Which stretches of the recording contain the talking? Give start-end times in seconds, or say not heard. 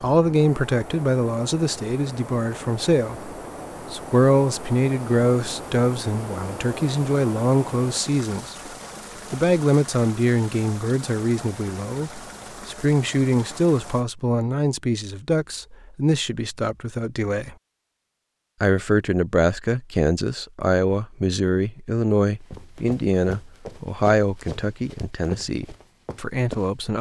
0.0-8.7, 9.3-17.6, 18.6-26.9.